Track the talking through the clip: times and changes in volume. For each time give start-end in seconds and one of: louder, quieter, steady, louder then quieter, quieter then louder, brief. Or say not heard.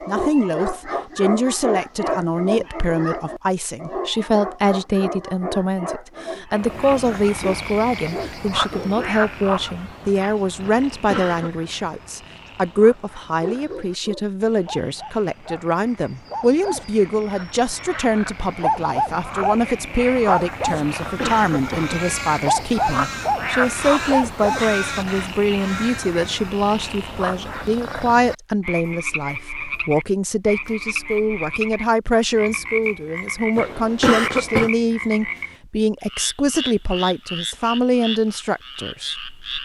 0.1-39.6 steady.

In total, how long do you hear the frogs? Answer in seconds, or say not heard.
33 s.